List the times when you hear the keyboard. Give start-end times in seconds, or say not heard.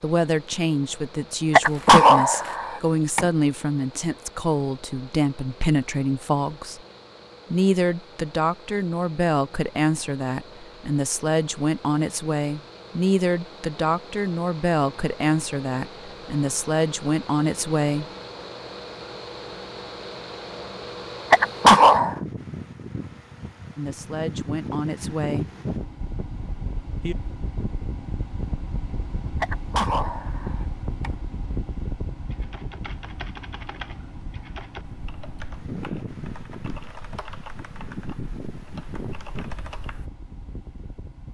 32.3-40.1.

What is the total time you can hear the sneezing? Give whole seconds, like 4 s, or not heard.
4 s.